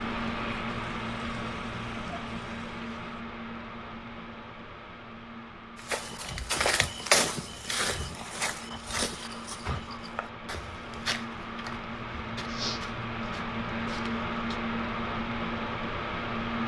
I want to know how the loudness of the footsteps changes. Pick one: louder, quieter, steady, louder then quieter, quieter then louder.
quieter.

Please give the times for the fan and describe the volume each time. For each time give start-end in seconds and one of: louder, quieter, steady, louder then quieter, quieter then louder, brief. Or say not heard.
0.0-16.6 quieter then louder.